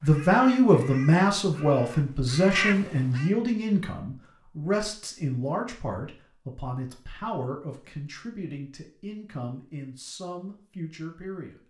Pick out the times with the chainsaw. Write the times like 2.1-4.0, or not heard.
not heard.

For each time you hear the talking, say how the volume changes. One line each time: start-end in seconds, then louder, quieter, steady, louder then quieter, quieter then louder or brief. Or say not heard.
0.0-11.6 quieter.